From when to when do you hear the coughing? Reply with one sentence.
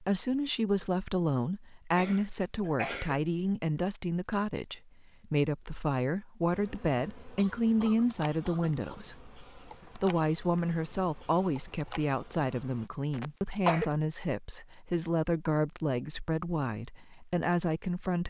The coughing can be heard from 1.9 to 3.2 s, from 7.3 to 9.0 s and from 13.1 to 13.9 s.